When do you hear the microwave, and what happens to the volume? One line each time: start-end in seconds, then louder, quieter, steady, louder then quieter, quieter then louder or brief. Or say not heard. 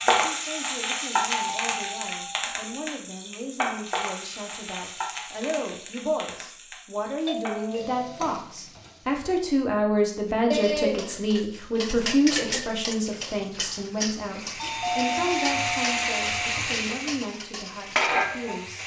not heard.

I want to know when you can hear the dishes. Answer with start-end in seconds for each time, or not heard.
10.5-18.3.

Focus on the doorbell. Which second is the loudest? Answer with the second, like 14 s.
15 s.